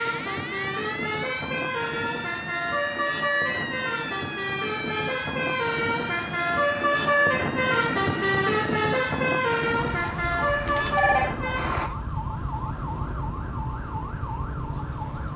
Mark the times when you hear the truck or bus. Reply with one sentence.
The truck or bus can be heard from 0.0 to 11.9 s.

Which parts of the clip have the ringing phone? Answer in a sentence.
The ringing phone can be heard from 10.7 to 11.3 s.